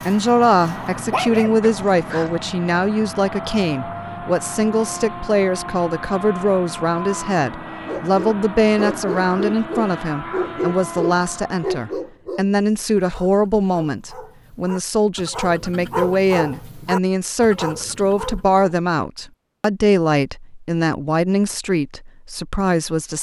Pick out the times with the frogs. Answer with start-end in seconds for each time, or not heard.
not heard.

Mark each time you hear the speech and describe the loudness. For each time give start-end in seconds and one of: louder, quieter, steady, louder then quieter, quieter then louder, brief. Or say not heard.
0.1-23.1 steady.